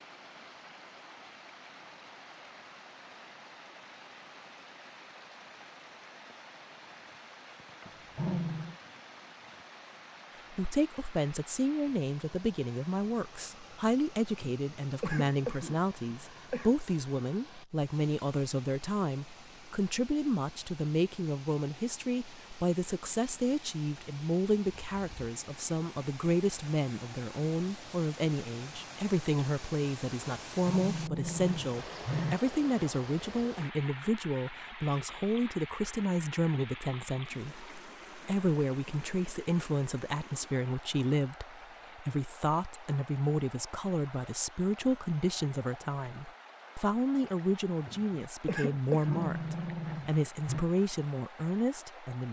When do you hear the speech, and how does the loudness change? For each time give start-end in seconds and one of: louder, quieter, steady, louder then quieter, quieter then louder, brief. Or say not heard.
10.5-52.2 steady.